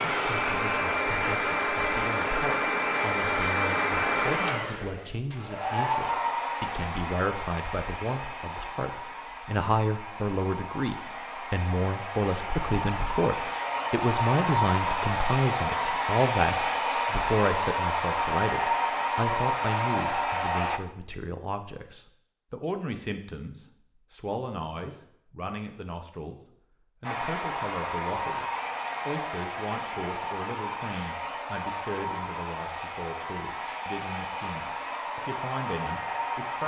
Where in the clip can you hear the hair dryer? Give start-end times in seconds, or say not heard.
0.0-20.8, 27.0-36.6.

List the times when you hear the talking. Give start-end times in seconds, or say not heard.
0.1-28.4, 29.1-36.6.